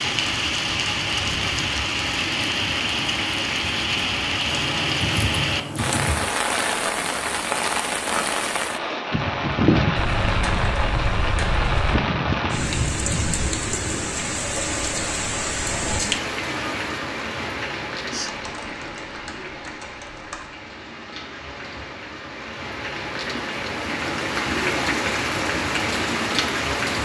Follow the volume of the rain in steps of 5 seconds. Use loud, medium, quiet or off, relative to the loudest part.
loud, loud, loud, medium, medium, loud.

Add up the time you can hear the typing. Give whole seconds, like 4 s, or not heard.
6 s.